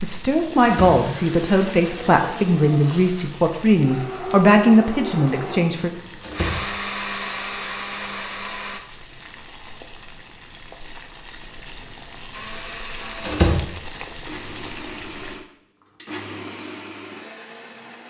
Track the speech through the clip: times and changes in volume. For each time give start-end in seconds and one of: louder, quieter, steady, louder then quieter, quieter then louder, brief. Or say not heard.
0.0-5.9 steady.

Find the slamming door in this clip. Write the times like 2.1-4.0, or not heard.
0.6-1.0, 6.2-6.7, 13.2-13.7.